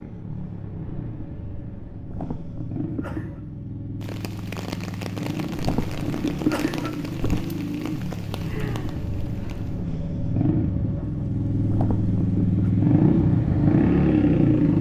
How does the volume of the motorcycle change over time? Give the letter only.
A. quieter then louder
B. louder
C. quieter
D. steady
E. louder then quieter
B.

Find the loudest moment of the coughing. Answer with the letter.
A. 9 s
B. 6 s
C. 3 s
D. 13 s
B.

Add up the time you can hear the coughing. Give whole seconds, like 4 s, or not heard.
4 s.